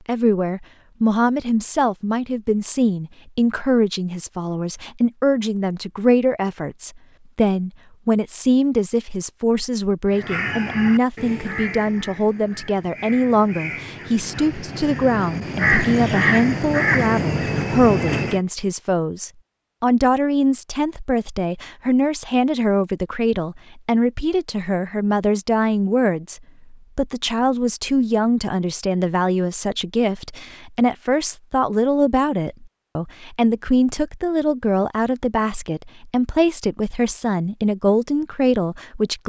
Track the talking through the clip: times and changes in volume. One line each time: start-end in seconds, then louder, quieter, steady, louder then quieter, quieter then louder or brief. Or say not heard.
0.1-39.2 steady.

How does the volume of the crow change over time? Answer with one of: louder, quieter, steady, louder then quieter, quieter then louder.
quieter then louder.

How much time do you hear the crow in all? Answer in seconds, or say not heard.
8 s.